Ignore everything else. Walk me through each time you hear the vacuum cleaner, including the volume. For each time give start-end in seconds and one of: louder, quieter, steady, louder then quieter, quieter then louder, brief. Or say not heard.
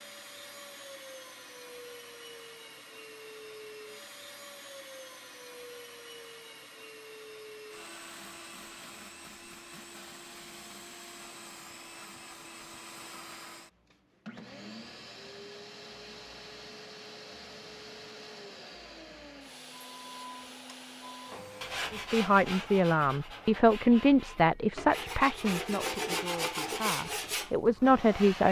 0.0-21.8 steady.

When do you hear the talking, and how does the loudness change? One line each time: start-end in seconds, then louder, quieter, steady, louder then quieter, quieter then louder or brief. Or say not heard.
21.9-28.4 quieter then louder.